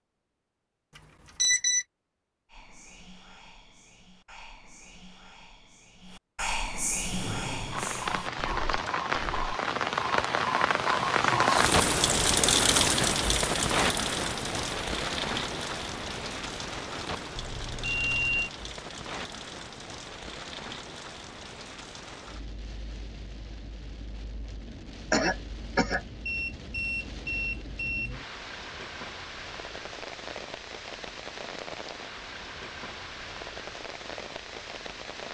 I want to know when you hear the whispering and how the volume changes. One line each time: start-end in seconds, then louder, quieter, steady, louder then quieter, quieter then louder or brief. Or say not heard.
2.5-9.6 louder then quieter.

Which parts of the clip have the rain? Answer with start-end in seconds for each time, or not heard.
7.1-35.3.